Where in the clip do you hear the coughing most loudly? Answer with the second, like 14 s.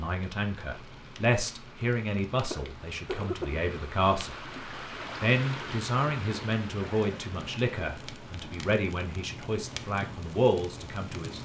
3 s.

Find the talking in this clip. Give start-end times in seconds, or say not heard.
0.0-4.3, 5.2-11.4.